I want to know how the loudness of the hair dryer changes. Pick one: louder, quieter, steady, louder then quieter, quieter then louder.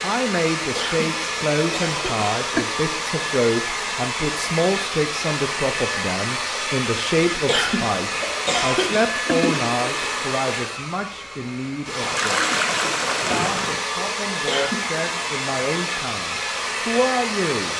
steady.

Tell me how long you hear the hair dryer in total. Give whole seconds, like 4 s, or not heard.
18 s.